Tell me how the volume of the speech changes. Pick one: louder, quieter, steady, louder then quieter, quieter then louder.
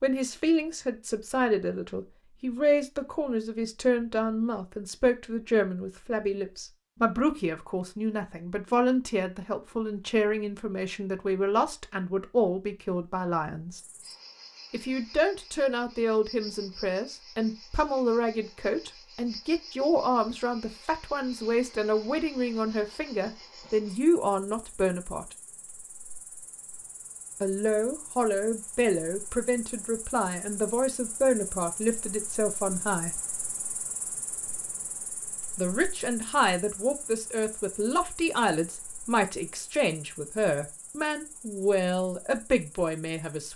steady.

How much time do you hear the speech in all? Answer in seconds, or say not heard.
38 s.